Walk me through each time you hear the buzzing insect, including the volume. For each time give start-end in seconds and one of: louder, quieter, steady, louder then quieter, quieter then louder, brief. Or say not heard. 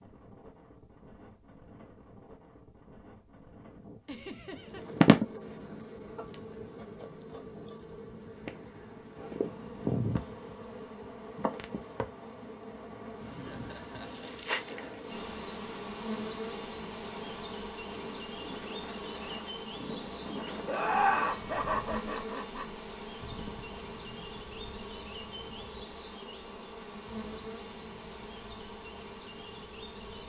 4.5-30.2 quieter.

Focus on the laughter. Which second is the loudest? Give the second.
21 s.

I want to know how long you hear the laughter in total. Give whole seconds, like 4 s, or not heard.
4 s.